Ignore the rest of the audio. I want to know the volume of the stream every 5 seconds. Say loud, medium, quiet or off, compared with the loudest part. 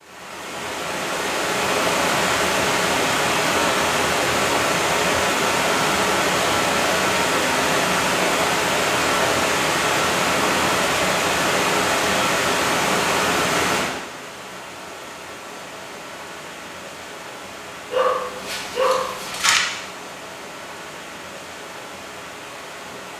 loud, loud, loud, quiet, quiet.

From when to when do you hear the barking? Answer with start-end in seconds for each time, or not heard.
17.9-19.6.